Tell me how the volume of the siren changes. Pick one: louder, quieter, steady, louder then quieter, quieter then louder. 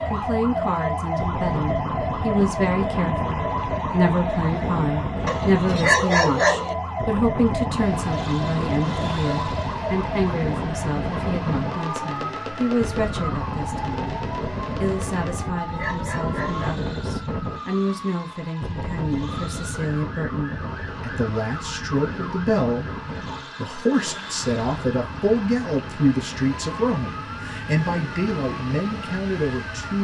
quieter.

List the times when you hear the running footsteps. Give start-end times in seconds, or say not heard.
not heard.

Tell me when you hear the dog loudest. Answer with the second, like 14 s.
6 s.